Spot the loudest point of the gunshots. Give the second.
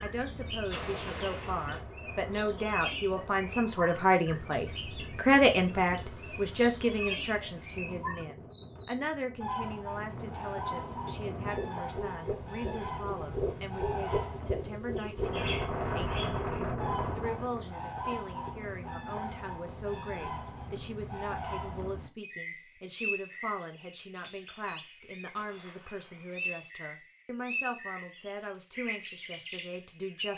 1 s.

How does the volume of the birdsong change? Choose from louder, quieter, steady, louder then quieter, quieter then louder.
steady.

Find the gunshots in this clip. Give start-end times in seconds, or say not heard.
0.7-1.9, 25.4-26.5.